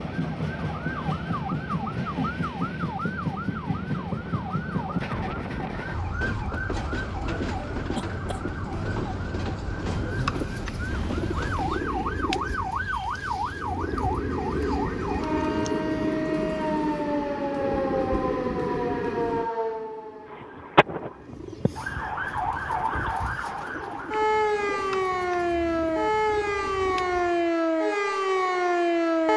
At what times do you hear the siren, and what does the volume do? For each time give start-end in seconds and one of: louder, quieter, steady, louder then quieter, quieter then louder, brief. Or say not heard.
0.0-29.3 louder.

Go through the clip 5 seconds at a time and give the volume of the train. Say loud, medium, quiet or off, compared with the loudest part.
loud, loud, loud, loud, quiet, off.